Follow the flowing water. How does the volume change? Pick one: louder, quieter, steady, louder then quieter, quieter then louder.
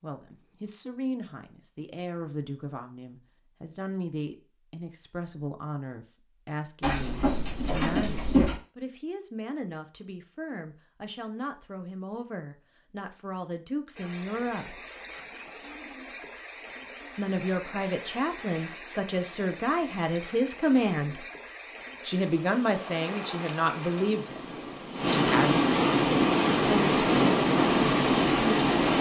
louder.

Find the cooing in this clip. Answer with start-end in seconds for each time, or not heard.
6.8-8.6.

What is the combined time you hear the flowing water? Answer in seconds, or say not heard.
15 s.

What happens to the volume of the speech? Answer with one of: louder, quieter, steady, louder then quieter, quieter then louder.
louder.